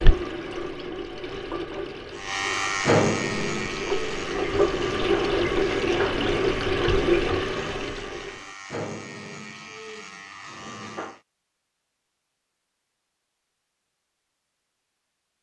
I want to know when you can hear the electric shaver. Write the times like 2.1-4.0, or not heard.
2.1-11.2.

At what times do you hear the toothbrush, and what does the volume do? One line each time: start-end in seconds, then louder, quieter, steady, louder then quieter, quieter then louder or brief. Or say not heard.
not heard.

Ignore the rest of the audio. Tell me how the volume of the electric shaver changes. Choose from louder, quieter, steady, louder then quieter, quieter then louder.
quieter.